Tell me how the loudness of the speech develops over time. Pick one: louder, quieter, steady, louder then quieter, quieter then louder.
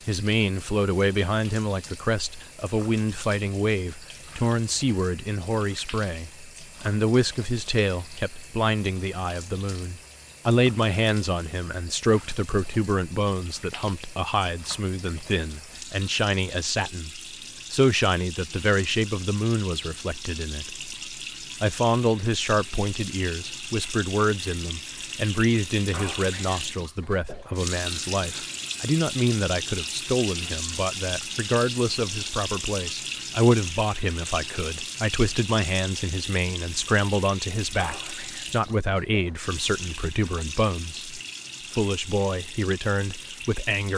steady.